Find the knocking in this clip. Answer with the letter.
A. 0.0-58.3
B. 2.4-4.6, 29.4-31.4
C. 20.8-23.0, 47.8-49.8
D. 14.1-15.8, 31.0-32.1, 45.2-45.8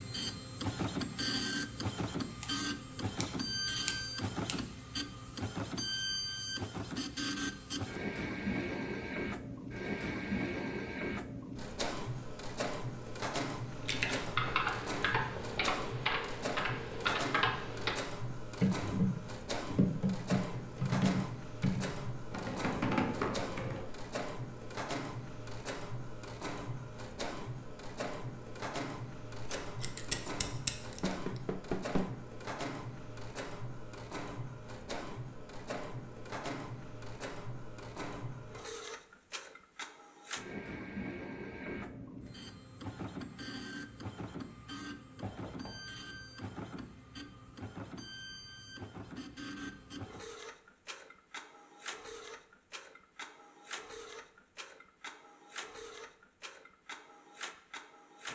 D.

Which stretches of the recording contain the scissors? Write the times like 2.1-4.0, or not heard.
2.4-4.6, 29.4-31.4.